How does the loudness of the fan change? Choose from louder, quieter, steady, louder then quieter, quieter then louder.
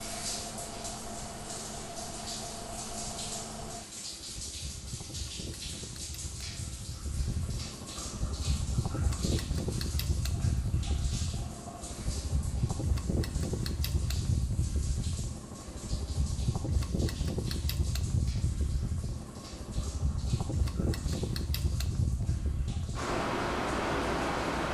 louder.